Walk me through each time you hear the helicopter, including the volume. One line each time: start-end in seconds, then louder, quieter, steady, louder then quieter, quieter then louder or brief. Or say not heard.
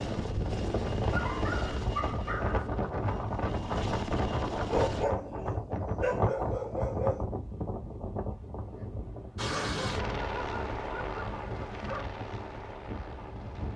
0.0-5.0 quieter then louder
9.3-13.7 quieter.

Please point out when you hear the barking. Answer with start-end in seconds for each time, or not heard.
1.1-2.7, 4.7-7.2, 9.7-12.1.